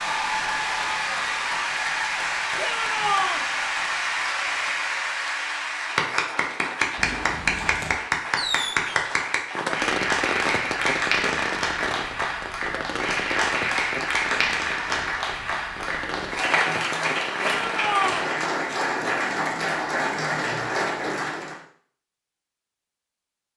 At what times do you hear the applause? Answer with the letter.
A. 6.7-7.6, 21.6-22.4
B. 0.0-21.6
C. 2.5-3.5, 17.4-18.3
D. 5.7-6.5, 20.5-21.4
B.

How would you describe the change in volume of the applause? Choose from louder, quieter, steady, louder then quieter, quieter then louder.
steady.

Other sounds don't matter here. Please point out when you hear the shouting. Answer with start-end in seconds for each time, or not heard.
2.5-3.5, 17.4-18.3.